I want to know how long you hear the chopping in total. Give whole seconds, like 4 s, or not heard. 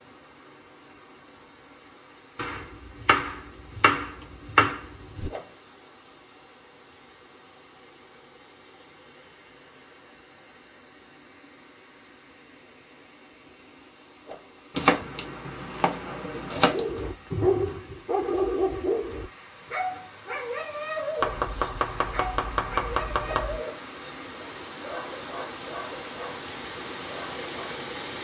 8 s.